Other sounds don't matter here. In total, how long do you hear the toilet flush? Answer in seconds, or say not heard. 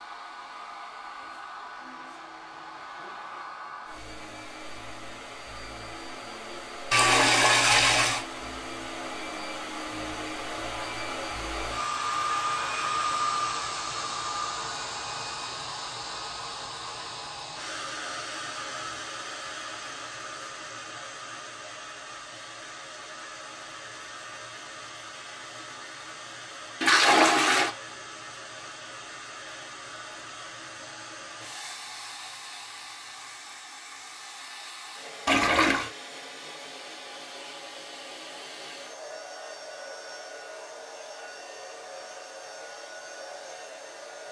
3 s.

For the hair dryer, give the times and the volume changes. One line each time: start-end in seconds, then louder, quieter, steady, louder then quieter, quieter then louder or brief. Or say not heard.
0.0-44.2 louder then quieter.